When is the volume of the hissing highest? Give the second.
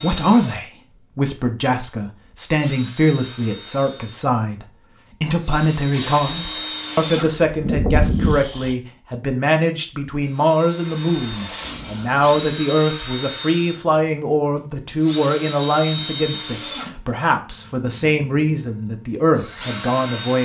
8 s.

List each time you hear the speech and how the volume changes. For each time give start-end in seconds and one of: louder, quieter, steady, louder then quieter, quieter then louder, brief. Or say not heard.
0.0-20.4 steady.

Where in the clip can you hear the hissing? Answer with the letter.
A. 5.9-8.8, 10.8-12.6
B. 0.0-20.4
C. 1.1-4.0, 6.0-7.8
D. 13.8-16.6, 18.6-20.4
A.